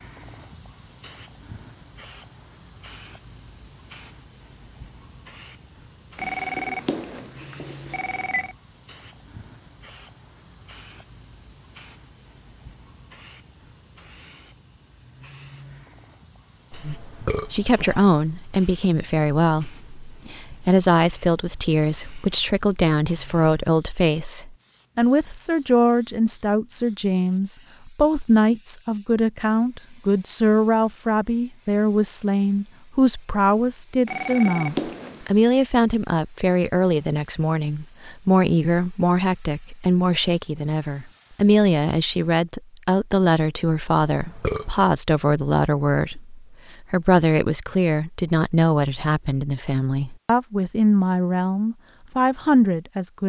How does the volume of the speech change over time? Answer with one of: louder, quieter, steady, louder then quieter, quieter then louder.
steady.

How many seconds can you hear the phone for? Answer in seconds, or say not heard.
4 s.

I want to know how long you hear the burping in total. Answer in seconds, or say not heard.
2 s.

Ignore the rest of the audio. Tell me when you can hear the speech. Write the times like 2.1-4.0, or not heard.
16.9-53.2.